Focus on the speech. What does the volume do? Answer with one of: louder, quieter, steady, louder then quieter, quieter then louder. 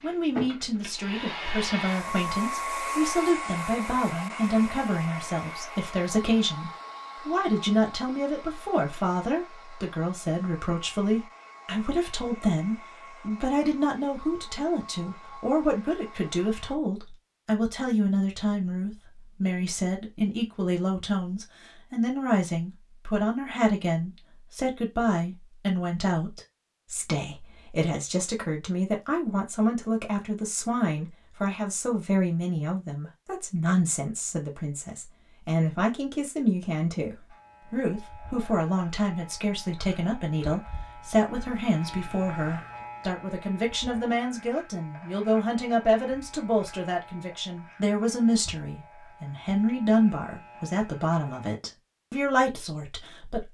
steady.